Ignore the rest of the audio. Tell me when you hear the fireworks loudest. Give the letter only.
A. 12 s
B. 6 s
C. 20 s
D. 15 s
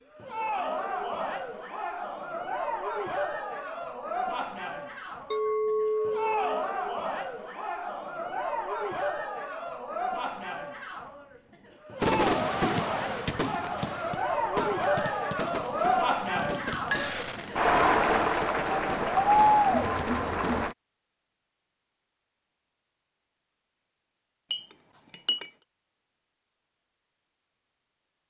A.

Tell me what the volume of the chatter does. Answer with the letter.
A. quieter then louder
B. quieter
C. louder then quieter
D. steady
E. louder
E.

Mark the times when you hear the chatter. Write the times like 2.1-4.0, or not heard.
0.1-20.8.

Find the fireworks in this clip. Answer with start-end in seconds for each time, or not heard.
12.0-20.8.